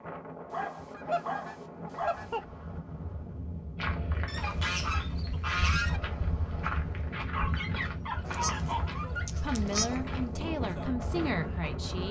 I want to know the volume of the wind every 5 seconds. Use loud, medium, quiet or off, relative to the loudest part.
medium, loud, loud.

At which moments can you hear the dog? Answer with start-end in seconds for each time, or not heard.
0.5-2.3, 7.3-9.2.